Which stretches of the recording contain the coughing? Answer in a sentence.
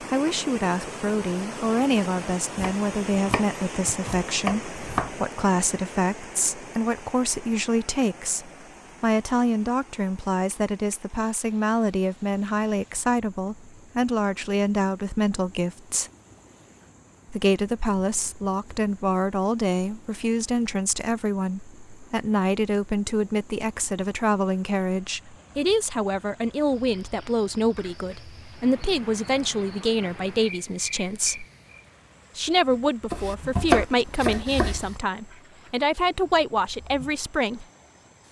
The coughing can't be heard in this clip.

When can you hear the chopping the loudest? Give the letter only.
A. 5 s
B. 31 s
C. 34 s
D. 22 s
C.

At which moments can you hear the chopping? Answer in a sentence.
The chopping can be heard from 2.5 to 5.1 s and from 33.1 to 35.0 s.